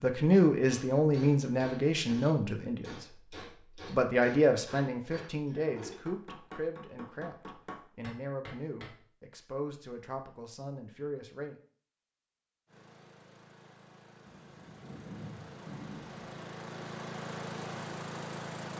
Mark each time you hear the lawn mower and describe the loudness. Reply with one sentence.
You can hear the lawn mower from 12.7 to 18.7 s, getting louder.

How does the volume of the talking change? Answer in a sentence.
The loudness of the talking goes down.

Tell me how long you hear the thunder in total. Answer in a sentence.
The thunder can be heard for 2 seconds in total.